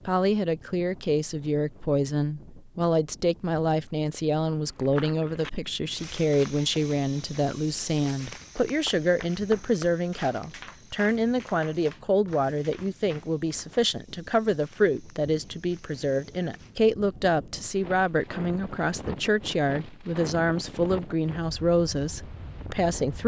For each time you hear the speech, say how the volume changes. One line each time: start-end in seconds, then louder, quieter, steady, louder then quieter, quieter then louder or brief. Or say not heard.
0.1-23.2 steady.